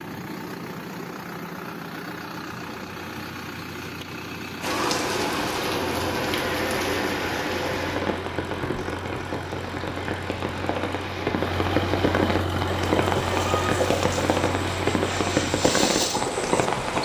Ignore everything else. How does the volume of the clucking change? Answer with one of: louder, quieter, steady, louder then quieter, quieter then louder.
quieter then louder.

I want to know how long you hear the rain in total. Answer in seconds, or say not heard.
12 s.